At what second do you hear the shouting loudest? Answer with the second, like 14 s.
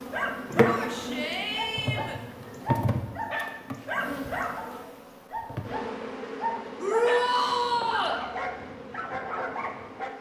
7 s.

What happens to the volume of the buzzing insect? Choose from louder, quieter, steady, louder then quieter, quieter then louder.
quieter.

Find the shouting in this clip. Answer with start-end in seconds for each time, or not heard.
0.7-2.2, 6.8-8.2.